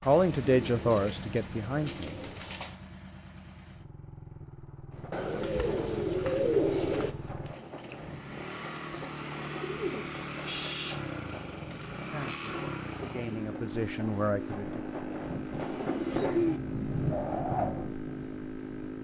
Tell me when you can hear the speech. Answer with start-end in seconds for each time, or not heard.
0.0-2.2, 12.0-15.0.